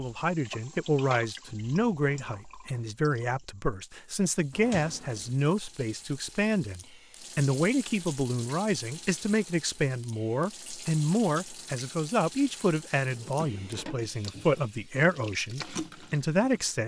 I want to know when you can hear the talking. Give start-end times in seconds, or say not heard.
0.0-16.8.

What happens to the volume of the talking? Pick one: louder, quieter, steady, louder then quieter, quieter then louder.
steady.